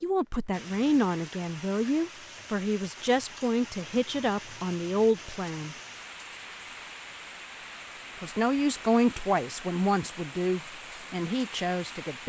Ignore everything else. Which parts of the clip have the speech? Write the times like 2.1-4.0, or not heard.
0.0-5.8, 8.2-12.2.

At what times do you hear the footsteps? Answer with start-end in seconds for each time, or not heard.
not heard.